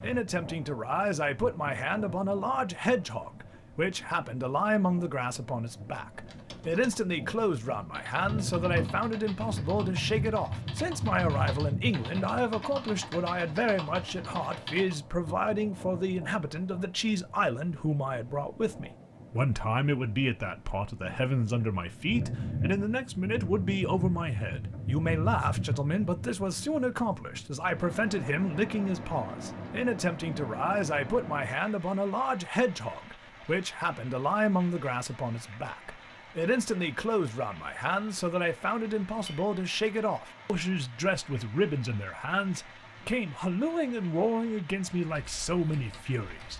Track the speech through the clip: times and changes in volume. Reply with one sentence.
You can hear the speech from 0.0 to 46.5 s, at a steady volume.